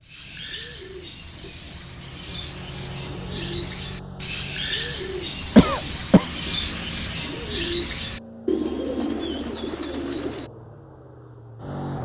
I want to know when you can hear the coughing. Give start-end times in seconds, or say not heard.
5.5-6.2.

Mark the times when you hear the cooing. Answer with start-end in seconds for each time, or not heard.
0.0-10.5.